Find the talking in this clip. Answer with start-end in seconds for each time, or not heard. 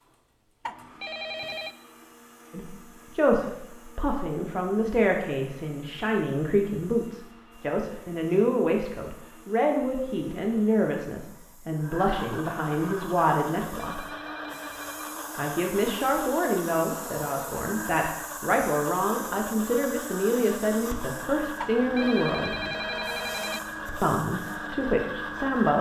2.5-14.1, 15.3-22.6, 24.0-25.7.